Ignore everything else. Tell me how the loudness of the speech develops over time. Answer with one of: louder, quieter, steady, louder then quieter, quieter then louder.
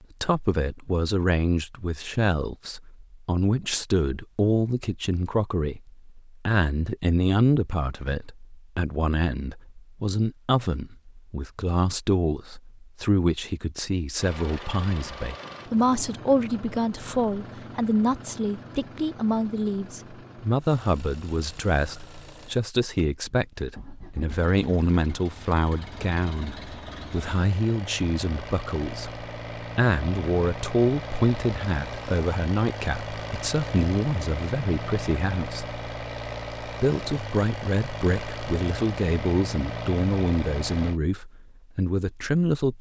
steady.